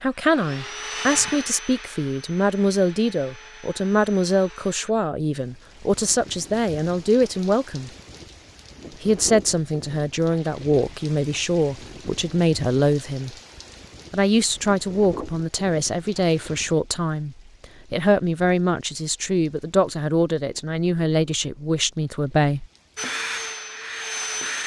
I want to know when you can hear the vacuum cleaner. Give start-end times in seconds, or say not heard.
0.0-5.0, 22.9-24.6.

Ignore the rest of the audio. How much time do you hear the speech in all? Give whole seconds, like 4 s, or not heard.
21 s.